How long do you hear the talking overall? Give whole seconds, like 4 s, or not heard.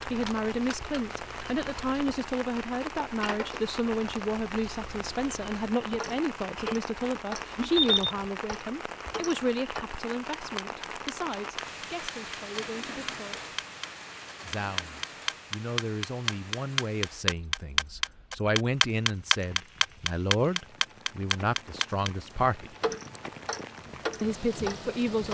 23 s.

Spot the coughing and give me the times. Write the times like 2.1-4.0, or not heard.
not heard.